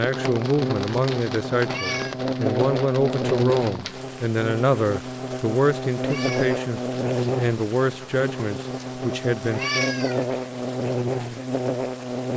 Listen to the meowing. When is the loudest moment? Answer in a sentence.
The volume of the meowing peaks at 10 seconds.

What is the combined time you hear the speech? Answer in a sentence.
The speech can be heard for 10 seconds in total.